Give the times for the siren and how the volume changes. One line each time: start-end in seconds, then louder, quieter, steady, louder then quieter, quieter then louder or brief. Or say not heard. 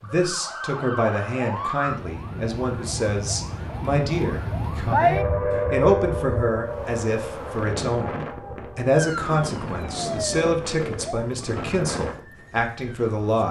0.0-13.4 louder then quieter.